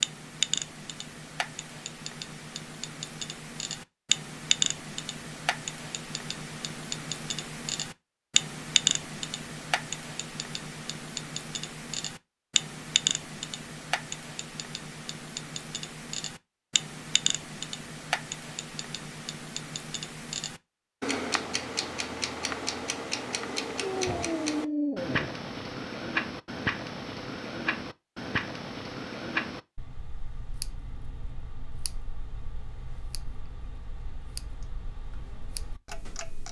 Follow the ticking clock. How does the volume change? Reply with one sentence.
The loudness of the ticking clock goes down.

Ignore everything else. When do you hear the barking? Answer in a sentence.
The barking can be heard from 23.8 to 25.3 s.